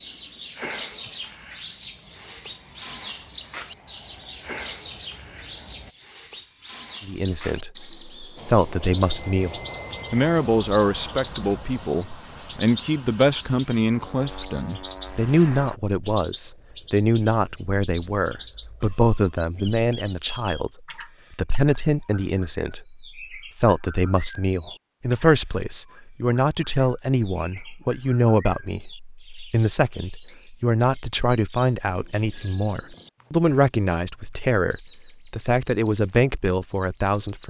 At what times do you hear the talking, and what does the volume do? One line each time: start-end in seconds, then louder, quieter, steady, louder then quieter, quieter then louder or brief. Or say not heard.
7.0-37.4 steady.